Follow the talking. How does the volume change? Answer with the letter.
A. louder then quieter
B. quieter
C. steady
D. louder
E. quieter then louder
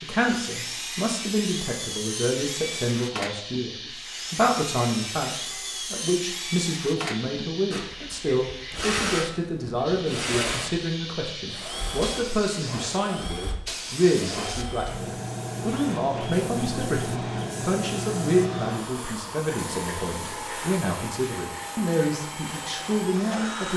C.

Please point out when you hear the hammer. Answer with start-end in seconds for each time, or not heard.
not heard.